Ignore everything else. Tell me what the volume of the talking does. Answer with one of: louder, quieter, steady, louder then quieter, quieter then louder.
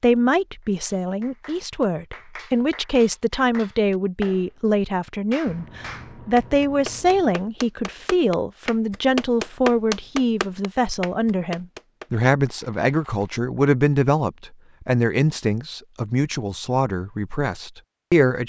steady.